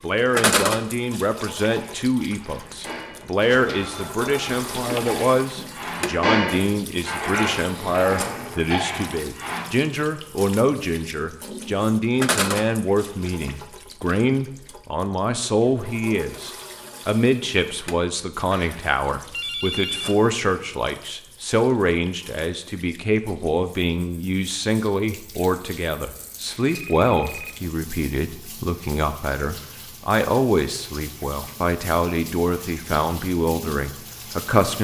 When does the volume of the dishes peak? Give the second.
6 s.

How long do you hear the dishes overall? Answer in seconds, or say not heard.
8 s.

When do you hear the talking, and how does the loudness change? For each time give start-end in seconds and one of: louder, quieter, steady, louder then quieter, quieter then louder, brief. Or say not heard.
0.0-34.7 steady.